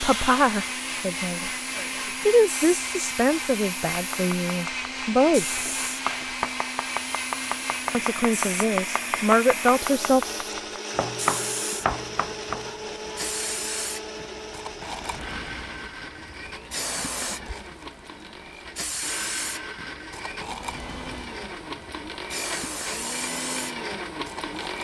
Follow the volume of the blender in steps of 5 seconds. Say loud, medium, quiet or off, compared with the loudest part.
loud, loud, loud, medium, loud.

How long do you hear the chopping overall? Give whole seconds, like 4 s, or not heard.
9 s.